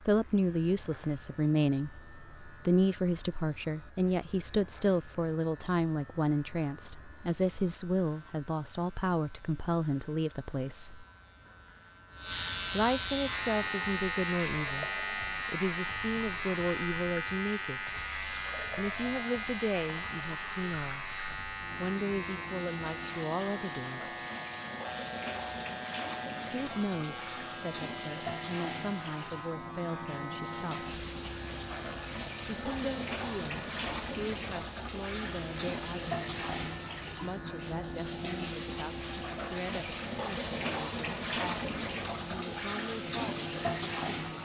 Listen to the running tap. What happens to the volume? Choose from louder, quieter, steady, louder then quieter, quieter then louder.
louder.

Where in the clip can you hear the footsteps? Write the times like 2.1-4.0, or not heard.
not heard.